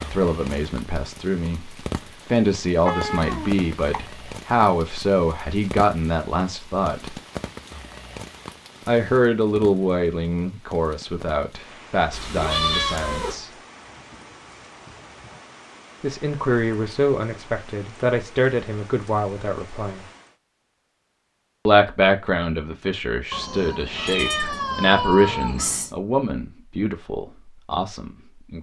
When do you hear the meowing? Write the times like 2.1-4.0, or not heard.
2.9-4.0, 12.1-13.3, 23.3-25.9.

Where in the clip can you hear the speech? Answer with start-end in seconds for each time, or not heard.
0.1-7.2, 8.8-13.5, 16.0-20.1, 21.6-28.5.